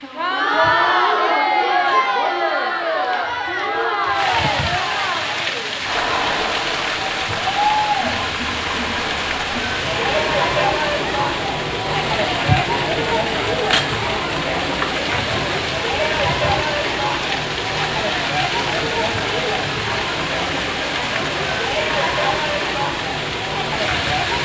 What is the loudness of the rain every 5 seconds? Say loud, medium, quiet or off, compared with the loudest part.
medium, loud, loud, loud, loud.